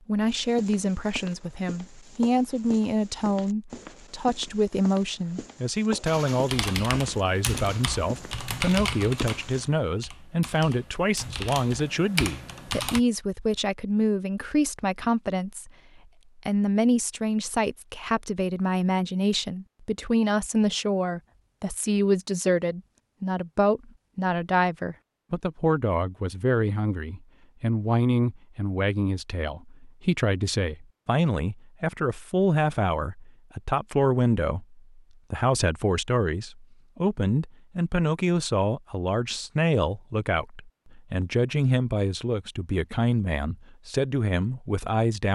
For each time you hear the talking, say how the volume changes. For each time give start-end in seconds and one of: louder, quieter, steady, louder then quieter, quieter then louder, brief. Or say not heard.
0.1-45.2 steady.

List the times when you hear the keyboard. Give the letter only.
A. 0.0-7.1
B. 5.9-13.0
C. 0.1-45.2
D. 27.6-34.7
B.